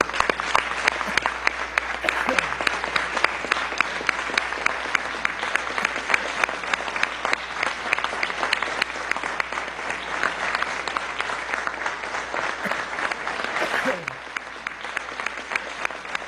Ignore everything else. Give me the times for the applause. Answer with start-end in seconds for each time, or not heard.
0.0-16.2.